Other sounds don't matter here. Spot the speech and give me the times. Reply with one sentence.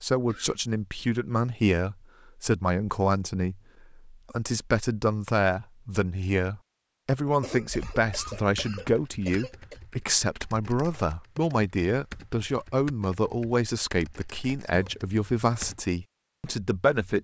The speech can be heard from 0.0 to 17.1 s.